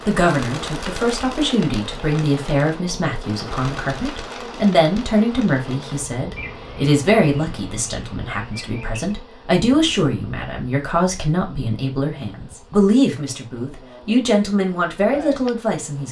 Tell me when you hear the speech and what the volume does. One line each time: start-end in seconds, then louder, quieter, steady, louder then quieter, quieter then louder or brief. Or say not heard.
0.1-16.0 steady.